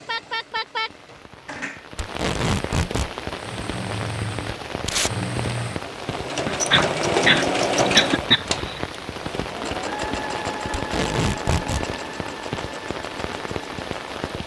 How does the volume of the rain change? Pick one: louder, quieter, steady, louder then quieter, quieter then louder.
steady.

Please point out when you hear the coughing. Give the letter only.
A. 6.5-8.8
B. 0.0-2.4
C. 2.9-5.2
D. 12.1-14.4
A.